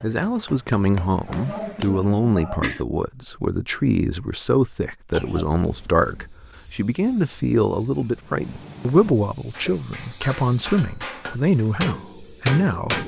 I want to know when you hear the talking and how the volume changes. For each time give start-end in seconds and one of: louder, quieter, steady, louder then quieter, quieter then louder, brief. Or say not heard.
0.0-13.0 steady.